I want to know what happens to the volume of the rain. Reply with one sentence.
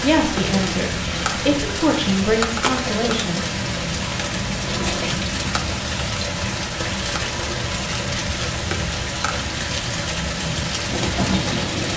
The loudness of the rain stays about the same.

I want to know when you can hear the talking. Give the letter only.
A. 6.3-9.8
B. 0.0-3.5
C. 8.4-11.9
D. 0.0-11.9
B.